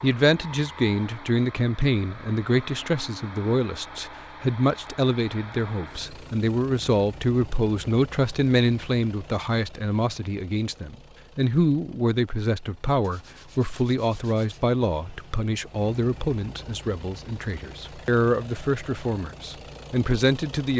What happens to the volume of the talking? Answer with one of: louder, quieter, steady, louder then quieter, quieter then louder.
steady.